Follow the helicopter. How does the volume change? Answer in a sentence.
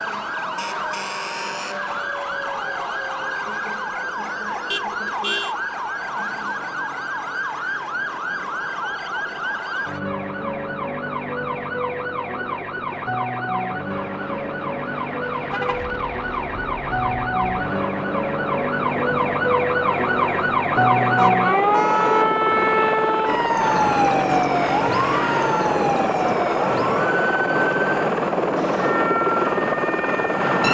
The loudness of the helicopter goes up.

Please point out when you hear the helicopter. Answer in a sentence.
You can hear the helicopter from 0.0 to 30.6 s.